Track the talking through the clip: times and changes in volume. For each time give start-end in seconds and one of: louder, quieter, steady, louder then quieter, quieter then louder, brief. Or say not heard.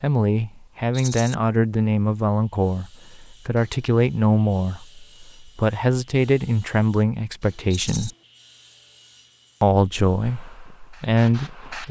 0.0-8.1 steady
9.6-11.8 brief.